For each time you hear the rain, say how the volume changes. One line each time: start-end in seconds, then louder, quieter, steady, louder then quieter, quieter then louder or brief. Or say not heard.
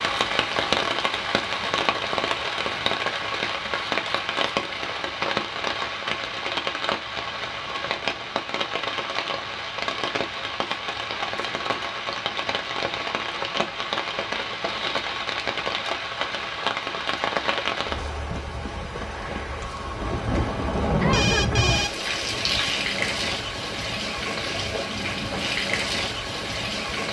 0.0-27.0 steady.